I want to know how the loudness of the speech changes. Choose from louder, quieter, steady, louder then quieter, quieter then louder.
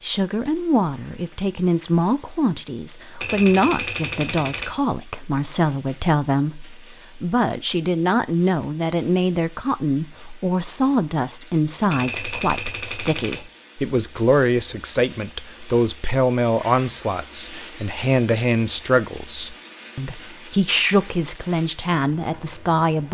steady.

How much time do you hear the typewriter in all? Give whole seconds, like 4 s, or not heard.
3 s.